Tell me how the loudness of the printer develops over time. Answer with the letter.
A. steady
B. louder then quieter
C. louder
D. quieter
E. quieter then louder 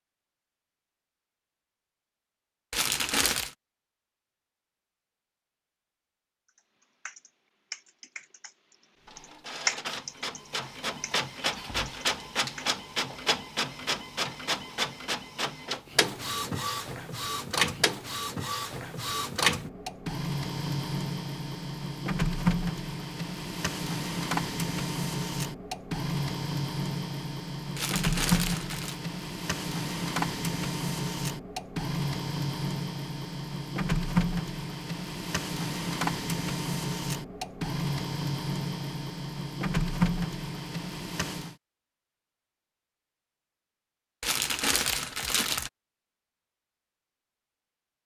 A.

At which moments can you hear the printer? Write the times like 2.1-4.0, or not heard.
9.1-41.5.